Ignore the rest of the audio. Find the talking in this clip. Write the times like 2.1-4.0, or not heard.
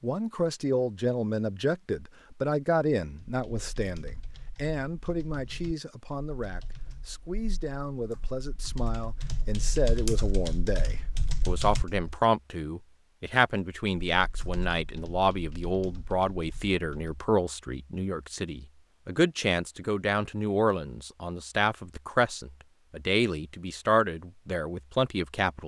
0.0-25.6.